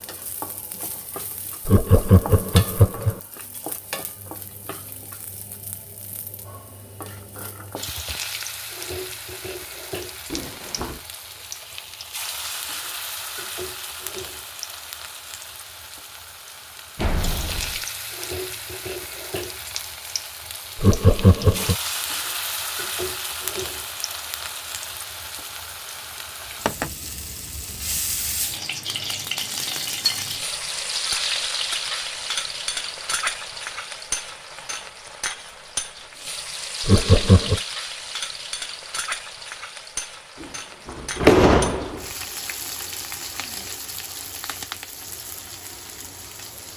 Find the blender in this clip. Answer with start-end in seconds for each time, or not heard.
not heard.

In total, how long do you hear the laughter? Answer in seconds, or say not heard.
3 s.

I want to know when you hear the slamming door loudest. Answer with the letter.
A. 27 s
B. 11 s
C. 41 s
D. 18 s
C.